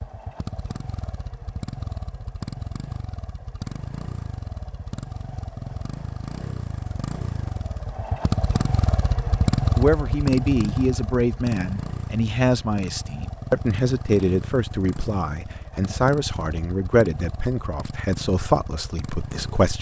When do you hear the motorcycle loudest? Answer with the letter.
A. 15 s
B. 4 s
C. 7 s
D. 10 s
D.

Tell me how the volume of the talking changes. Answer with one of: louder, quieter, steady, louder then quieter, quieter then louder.
steady.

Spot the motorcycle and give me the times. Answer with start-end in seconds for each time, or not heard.
0.0-19.7.